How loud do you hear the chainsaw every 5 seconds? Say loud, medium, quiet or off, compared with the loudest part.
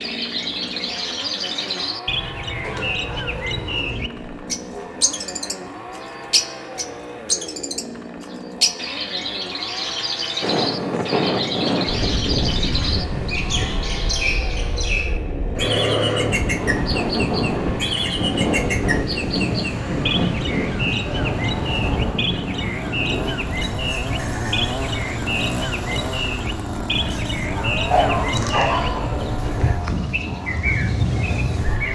medium, medium, medium, medium, loud, loud, medium.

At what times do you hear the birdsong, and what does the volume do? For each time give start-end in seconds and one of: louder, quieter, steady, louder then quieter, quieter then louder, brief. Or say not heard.
0.0-31.9 steady.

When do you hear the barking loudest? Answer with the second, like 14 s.
28 s.